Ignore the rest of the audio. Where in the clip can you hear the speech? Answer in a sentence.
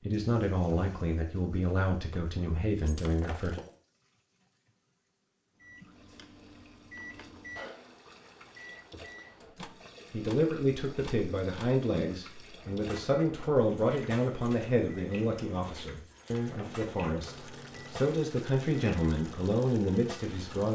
The speech can be heard from 0.0 to 3.5 s and from 10.1 to 20.6 s.